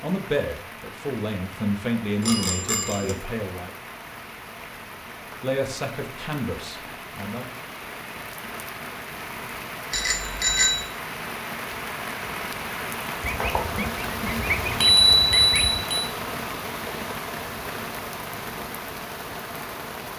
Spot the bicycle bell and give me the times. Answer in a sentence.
You can hear the bicycle bell from 2.2 to 3.1 s, from 9.9 to 10.8 s and from 14.8 to 16.1 s.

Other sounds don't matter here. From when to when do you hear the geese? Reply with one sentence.
The geese can be heard from 13.2 to 15.8 s.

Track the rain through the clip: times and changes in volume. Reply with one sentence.
You can hear the rain from 0.0 to 20.1 s, getting louder.